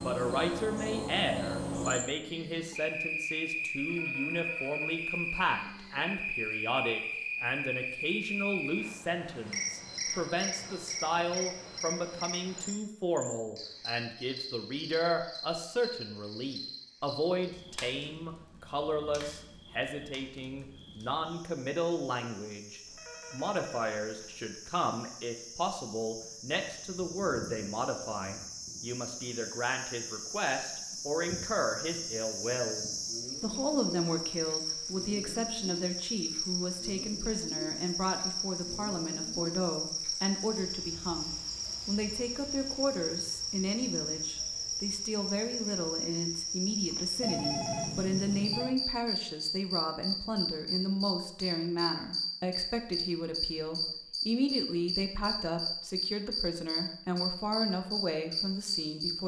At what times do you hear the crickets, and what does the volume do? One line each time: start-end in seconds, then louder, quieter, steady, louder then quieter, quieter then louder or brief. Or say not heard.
0.0-59.1 quieter then louder.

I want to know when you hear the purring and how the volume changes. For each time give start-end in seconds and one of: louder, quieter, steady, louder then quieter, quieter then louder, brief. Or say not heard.
not heard.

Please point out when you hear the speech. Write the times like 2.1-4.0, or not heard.
0.0-59.2.